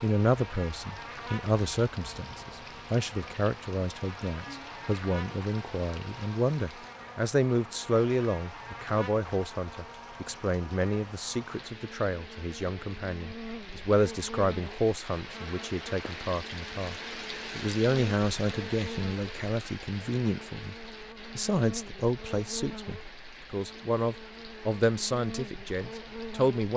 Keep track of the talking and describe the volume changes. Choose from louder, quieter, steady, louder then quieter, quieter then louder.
steady.